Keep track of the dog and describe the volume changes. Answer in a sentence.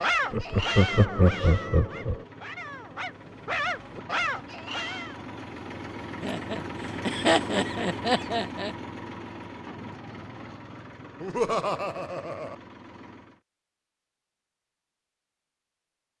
The loudness of the dog goes down, then up.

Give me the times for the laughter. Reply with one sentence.
The laughter can be heard from 0.3 to 2.2 s, from 6.2 to 8.7 s and from 11.2 to 12.6 s.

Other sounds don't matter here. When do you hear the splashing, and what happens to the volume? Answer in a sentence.
The splashing can't be heard in this clip.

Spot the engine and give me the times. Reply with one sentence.
You can hear the engine from 0.0 to 13.4 s.